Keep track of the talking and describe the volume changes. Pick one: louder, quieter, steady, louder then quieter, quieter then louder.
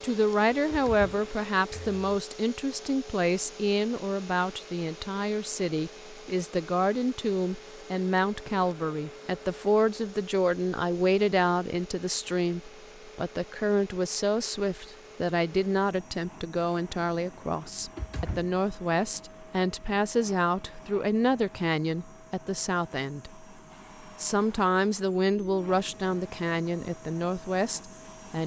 steady.